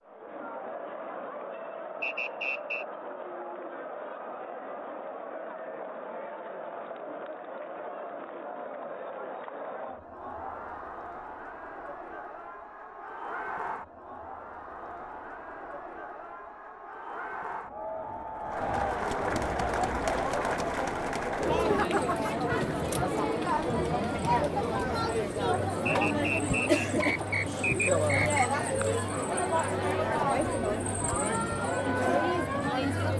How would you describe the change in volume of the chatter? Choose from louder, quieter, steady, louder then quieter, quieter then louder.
louder.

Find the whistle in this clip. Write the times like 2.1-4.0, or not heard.
2.0-2.9, 25.9-28.5.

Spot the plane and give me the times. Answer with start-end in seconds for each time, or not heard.
not heard.